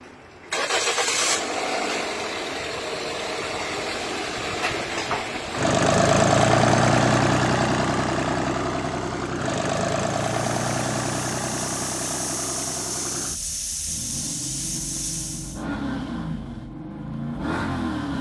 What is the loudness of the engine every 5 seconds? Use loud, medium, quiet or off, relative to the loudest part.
medium, loud, medium, medium.